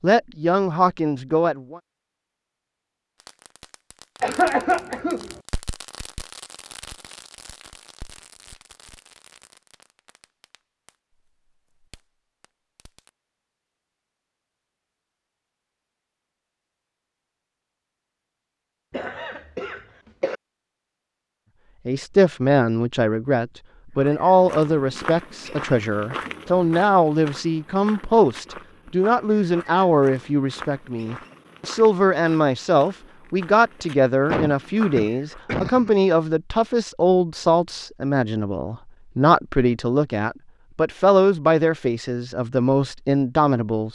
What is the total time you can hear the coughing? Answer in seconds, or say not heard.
4 s.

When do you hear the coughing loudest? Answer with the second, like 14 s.
5 s.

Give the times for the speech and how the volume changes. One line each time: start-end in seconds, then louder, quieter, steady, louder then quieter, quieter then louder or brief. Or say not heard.
0.0-1.8 brief
21.9-43.9 steady.